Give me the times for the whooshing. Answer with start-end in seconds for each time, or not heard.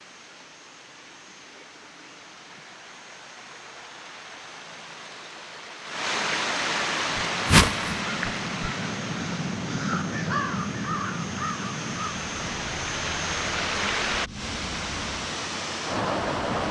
7.5-8.0.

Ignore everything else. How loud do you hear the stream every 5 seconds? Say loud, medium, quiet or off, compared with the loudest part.
quiet, loud, loud, loud.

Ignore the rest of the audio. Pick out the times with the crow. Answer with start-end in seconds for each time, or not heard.
6.9-15.4.